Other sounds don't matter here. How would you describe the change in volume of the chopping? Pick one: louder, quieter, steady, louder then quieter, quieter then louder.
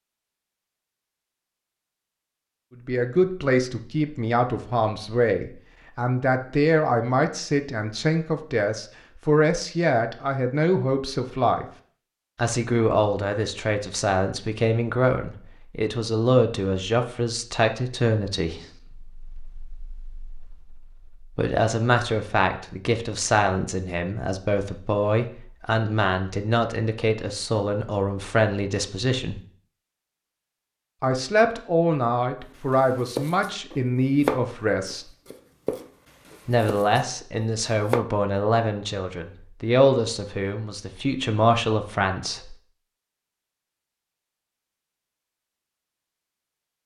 louder then quieter.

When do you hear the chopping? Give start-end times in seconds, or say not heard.
32.7-38.0.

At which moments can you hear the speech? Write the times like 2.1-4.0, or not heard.
2.9-11.7, 12.3-29.4, 31.0-35.0, 36.5-42.5.